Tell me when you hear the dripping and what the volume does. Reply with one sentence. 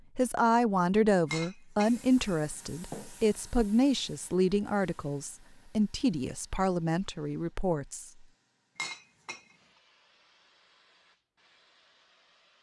You can't hear the dripping here.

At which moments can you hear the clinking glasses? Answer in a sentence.
The clinking glasses can be heard from 1.3 to 3.1 s and from 8.8 to 9.6 s.